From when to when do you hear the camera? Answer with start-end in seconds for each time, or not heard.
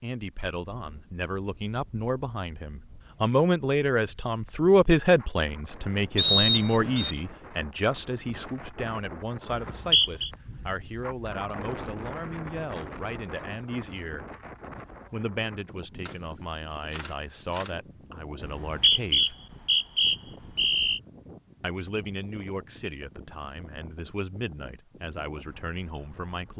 16.1-17.8.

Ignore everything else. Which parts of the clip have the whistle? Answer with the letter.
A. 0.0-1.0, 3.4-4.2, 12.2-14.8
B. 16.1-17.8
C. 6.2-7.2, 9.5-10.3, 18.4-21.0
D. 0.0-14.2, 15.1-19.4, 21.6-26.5
C.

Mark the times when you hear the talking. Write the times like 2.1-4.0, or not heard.
0.0-14.2, 15.1-19.4, 21.6-26.5.